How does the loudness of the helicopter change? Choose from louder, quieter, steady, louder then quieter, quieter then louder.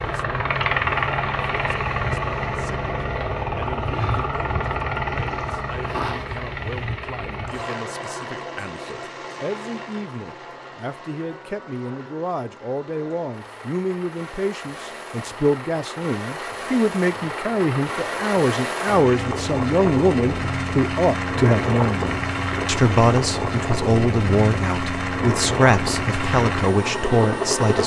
quieter then louder.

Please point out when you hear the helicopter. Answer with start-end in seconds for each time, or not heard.
0.0-27.8.